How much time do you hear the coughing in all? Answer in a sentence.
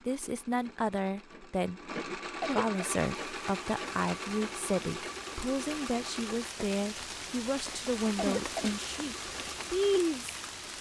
The coughing can be heard for 2 seconds in total.